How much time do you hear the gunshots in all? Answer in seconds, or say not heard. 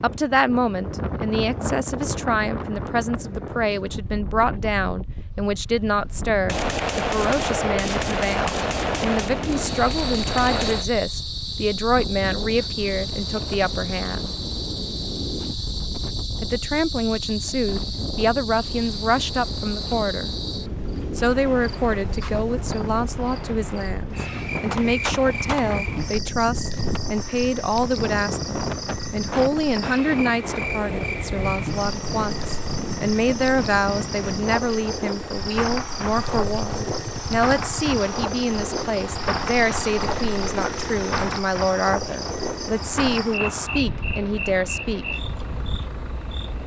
8 s.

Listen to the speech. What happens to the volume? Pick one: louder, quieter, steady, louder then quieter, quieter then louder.
steady.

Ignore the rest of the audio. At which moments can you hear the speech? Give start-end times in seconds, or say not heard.
0.0-14.3, 16.4-20.3, 21.1-45.0.